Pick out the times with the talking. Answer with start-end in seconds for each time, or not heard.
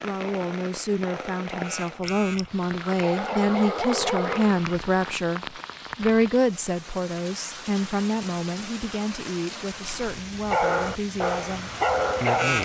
0.0-12.5.